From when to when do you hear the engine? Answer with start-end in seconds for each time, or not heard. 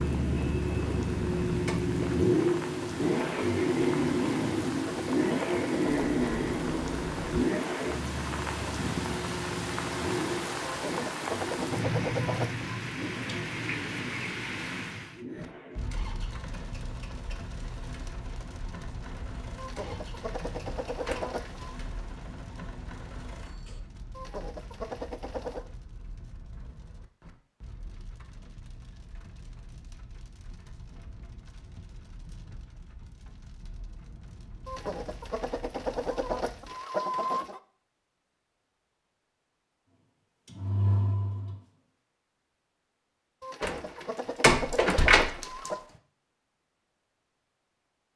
0.0-23.8, 39.9-41.8.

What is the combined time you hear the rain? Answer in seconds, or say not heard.
37 s.